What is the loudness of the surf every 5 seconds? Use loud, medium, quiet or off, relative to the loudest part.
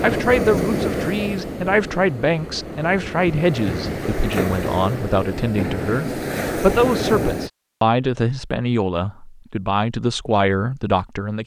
loud, loud, off.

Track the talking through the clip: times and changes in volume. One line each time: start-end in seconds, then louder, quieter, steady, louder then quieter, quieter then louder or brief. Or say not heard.
0.0-11.4 steady.